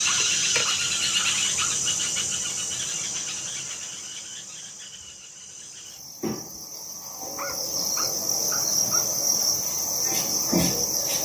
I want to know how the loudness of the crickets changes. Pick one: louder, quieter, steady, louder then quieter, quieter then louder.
quieter then louder.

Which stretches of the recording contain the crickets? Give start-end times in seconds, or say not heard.
0.0-11.2.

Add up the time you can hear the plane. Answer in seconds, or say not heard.
not heard.